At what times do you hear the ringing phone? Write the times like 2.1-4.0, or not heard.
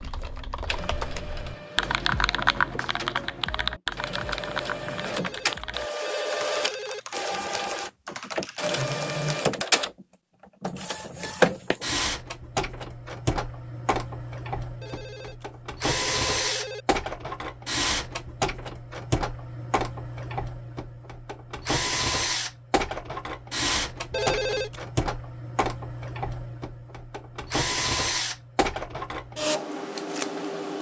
5.0-7.0, 14.8-16.9, 24.1-24.8.